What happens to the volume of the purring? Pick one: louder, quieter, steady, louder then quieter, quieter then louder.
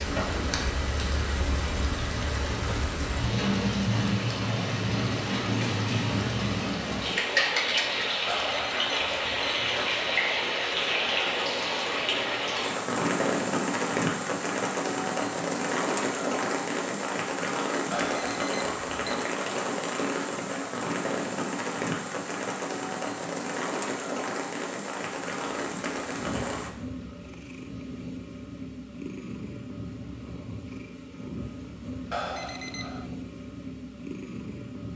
steady.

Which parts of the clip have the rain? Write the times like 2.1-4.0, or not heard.
0.0-26.7.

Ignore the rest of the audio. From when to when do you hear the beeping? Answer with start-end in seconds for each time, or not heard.
8.2-9.8, 17.9-19.3, 32.1-33.1.